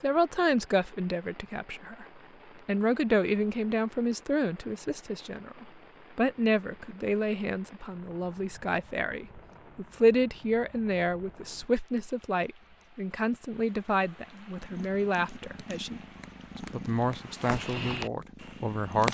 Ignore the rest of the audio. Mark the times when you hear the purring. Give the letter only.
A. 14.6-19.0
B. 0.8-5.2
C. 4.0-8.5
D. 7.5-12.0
A.